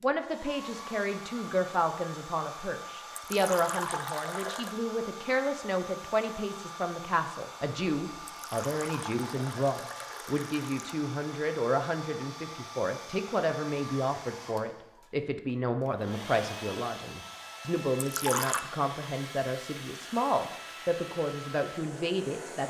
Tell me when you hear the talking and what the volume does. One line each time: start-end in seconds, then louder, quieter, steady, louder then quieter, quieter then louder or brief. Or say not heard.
0.0-22.6 steady.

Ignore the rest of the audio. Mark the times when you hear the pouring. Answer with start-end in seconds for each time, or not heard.
3.1-4.8, 8.3-10.9, 17.9-18.6.